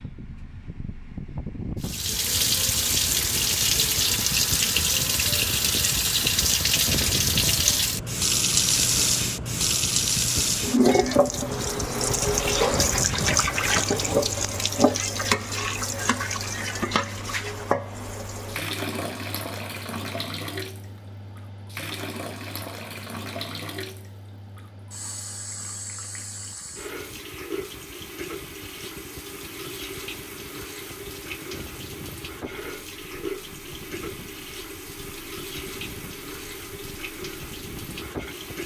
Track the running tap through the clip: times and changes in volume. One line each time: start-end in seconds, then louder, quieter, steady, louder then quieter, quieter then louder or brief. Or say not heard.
1.8-38.6 quieter.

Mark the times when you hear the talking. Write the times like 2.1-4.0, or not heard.
not heard.